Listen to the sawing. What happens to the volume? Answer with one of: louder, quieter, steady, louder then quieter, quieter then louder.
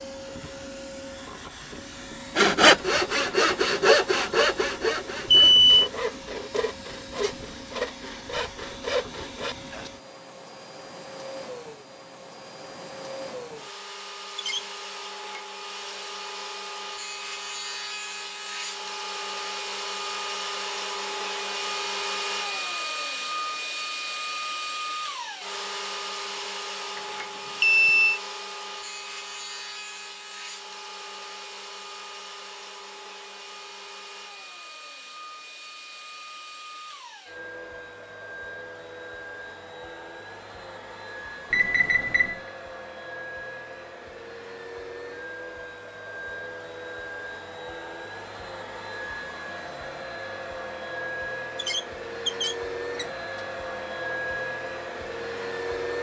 quieter.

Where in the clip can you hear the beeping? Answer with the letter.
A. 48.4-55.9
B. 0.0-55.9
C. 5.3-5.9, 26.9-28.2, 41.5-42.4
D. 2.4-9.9
C.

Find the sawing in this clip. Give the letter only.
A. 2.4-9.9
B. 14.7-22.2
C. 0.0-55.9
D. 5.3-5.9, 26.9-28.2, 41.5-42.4
A.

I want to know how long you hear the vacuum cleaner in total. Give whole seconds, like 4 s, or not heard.
56 s.